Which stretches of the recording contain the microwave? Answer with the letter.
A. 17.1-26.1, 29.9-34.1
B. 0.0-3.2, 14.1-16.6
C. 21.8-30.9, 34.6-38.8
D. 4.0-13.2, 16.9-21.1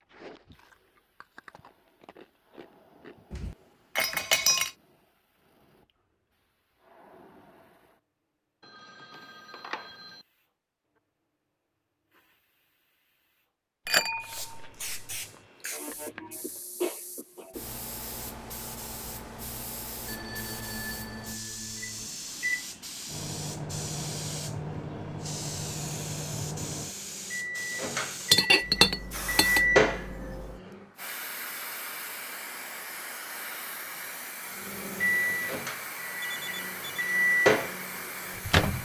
C.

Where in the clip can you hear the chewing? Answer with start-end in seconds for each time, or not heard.
0.0-3.2, 14.1-16.6.